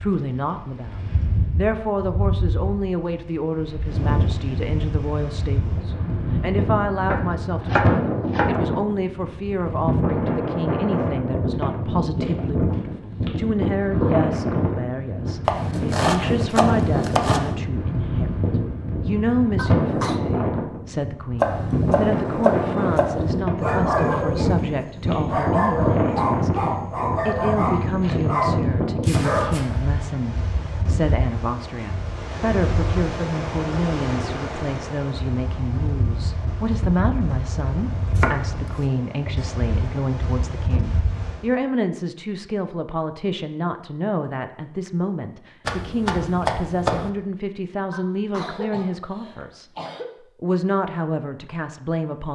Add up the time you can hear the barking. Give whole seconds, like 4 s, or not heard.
6 s.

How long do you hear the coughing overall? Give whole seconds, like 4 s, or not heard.
3 s.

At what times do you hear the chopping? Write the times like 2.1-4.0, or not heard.
7.1-8.6, 15.4-17.6, 21.4-23.3, 38.1-38.7, 45.6-47.1.